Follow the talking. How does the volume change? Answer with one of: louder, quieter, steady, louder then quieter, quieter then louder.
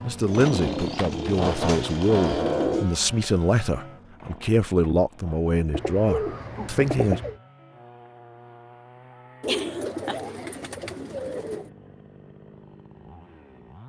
steady.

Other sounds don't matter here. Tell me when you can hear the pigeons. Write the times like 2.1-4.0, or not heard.
0.2-2.9, 5.7-7.3, 9.4-11.7.